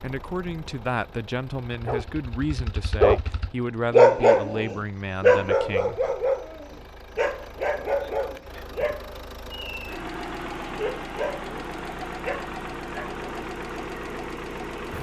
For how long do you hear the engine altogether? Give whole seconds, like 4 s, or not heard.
15 s.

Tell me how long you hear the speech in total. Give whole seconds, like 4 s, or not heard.
6 s.